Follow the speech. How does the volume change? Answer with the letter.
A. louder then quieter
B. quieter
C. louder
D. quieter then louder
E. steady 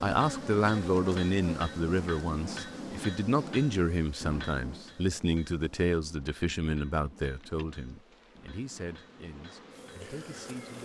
B.